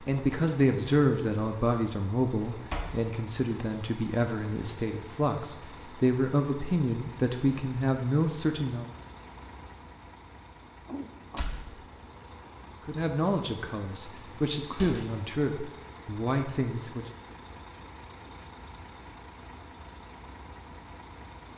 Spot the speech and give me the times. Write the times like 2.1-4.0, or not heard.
0.0-8.8, 12.8-17.1.